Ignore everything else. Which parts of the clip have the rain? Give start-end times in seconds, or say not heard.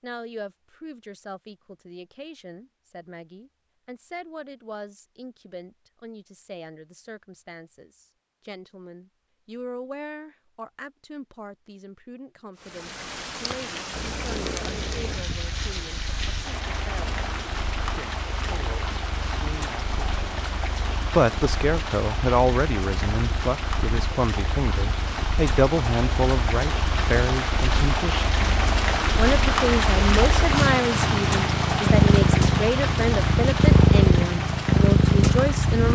12.6-35.8.